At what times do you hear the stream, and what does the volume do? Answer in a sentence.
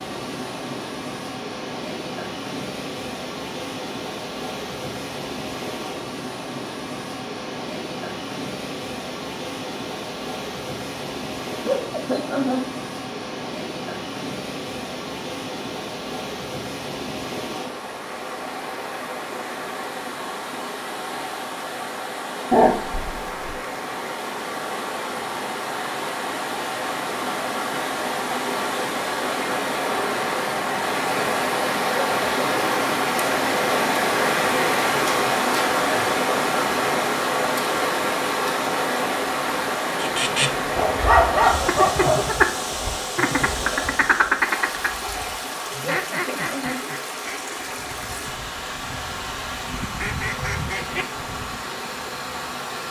The stream can be heard from 0.0 to 52.8 s, getting louder then quieter.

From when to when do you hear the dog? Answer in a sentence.
The dog can be heard from 22.5 to 23.6 s and from 40.8 to 42.2 s.